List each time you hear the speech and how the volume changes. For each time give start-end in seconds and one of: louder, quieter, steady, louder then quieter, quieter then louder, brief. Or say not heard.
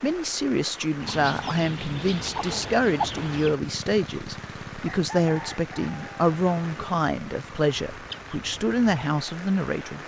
0.0-10.0 steady.